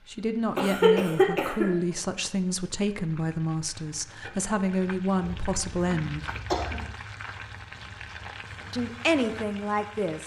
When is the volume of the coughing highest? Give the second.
1 s.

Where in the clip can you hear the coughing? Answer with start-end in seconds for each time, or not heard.
0.6-1.7, 5.2-6.9.